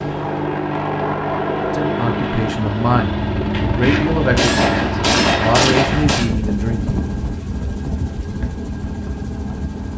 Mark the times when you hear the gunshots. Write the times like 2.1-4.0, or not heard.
3.5-6.3.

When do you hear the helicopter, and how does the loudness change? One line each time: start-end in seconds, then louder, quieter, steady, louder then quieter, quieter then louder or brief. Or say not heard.
0.0-9.9 quieter.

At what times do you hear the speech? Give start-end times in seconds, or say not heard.
1.7-7.0.